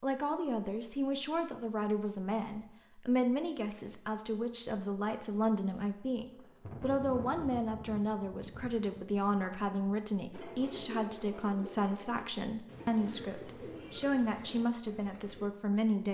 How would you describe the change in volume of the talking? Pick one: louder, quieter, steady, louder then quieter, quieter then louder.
steady.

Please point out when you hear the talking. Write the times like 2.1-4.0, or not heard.
0.0-16.0.